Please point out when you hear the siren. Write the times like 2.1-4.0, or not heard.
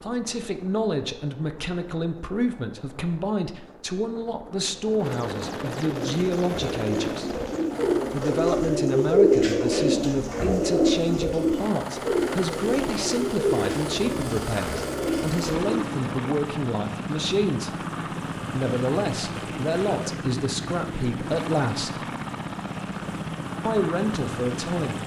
not heard.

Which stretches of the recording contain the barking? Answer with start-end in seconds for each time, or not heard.
not heard.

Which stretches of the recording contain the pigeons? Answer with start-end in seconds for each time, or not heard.
5.9-16.3.